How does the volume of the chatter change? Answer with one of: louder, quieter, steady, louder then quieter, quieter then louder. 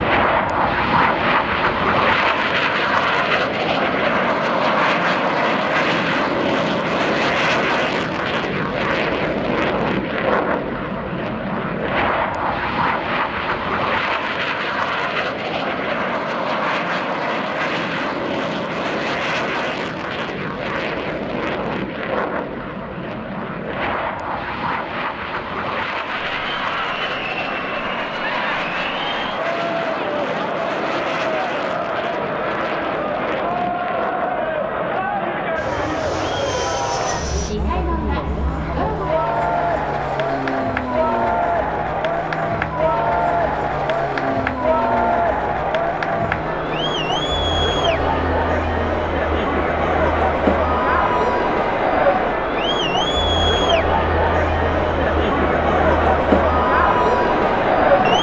louder.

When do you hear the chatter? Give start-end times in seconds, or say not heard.
26.1-58.1.